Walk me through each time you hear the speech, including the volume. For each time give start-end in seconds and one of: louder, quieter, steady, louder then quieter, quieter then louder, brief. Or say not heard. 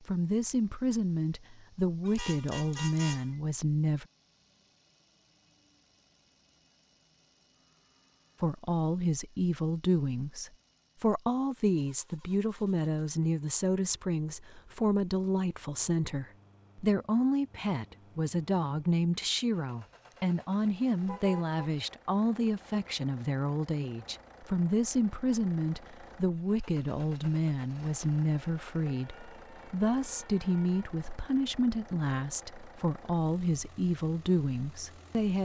0.0-4.0 steady
8.4-35.3 steady.